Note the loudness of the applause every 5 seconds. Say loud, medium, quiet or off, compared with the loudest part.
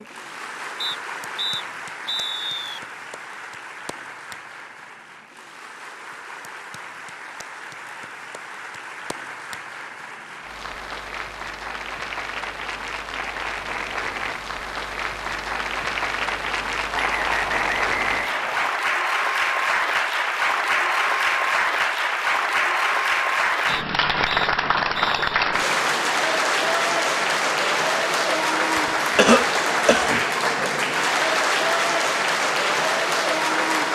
quiet, quiet, medium, loud, loud, loud, loud.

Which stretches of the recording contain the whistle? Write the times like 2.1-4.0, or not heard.
0.8-2.8, 16.9-18.8, 23.6-25.4.